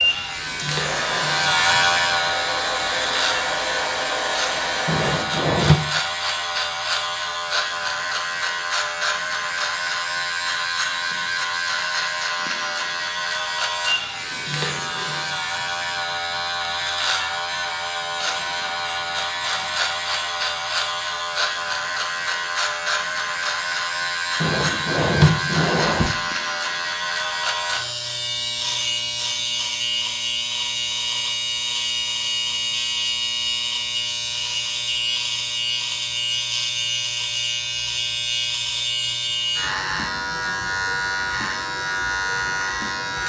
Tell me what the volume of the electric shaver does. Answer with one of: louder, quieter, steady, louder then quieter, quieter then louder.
steady.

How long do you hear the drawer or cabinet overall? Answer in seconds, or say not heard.
3 s.